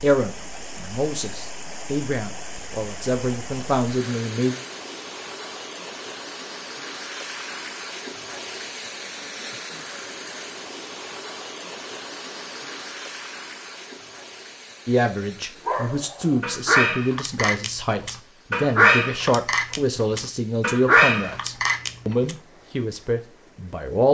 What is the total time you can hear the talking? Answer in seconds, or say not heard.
14 s.